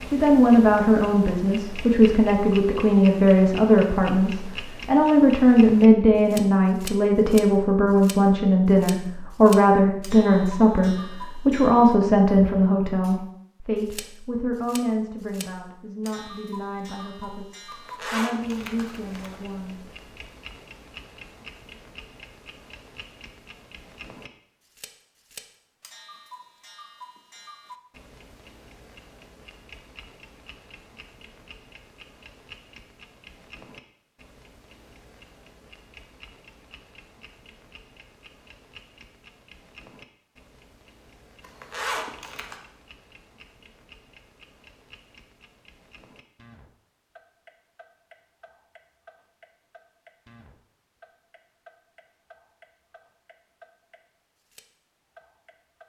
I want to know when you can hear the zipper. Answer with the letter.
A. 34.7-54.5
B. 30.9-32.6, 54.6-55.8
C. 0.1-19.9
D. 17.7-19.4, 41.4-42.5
D.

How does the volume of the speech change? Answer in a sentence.
The volume of the speech goes down.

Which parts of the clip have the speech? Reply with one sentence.
The speech can be heard from 0.1 to 19.9 s.